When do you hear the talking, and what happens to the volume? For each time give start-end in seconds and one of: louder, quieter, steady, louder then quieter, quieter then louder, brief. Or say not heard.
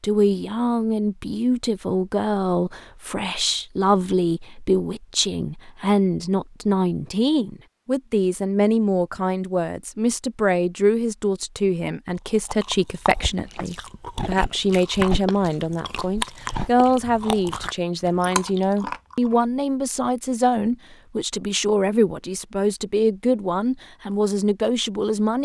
0.0-25.4 steady.